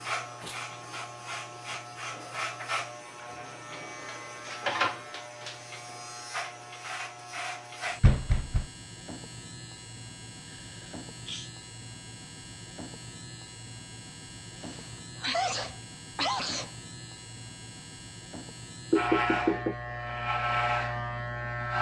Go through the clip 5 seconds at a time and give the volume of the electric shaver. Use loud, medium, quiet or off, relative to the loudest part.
medium, medium, quiet, medium, loud.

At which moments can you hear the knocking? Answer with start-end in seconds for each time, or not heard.
8.0-8.7, 18.9-19.8.